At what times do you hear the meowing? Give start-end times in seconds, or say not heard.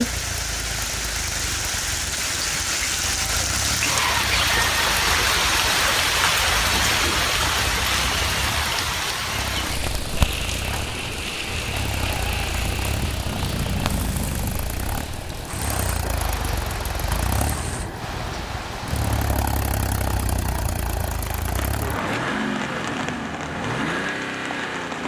13.2-14.6.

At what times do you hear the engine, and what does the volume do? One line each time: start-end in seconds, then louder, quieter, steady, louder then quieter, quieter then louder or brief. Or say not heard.
0.0-25.0 louder.